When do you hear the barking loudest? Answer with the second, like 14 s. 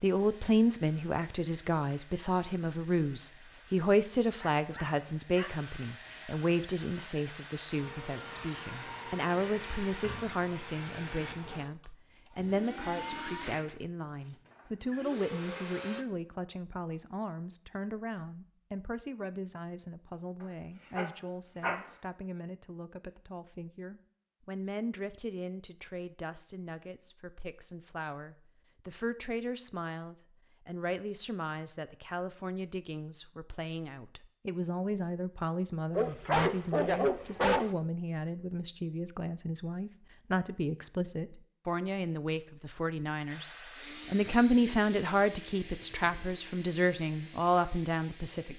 37 s.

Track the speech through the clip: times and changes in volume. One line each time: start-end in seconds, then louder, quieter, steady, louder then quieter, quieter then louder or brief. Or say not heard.
0.0-48.5 quieter then louder.